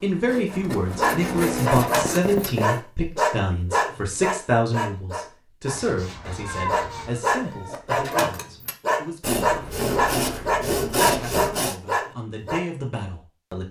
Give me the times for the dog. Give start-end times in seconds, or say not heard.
0.5-12.7.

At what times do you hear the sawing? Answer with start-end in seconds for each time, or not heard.
0.2-2.8, 5.7-7.2, 9.2-11.8.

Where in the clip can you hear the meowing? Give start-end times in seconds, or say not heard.
6.3-7.2.